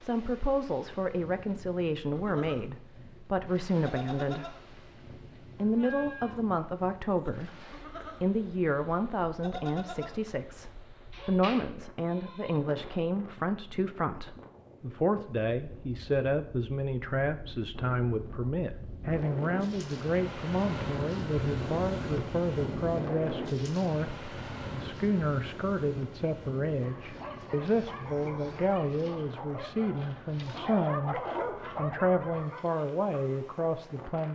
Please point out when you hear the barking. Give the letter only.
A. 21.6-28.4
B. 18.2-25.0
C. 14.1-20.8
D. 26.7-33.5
D.